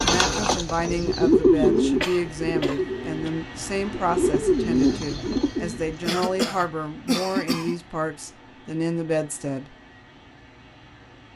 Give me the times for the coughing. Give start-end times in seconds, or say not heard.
2.0-3.3, 6.0-7.8.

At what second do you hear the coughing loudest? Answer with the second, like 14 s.
7 s.